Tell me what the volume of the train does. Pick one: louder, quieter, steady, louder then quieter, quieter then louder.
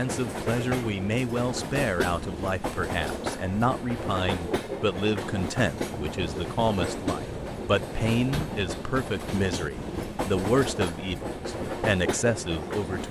steady.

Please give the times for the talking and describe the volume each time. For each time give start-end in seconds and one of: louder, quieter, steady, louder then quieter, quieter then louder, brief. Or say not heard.
0.0-13.0 steady.